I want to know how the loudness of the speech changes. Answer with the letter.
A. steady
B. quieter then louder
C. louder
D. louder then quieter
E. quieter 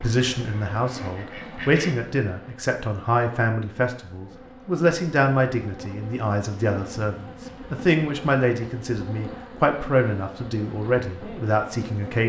A.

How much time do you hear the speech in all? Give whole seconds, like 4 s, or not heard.
12 s.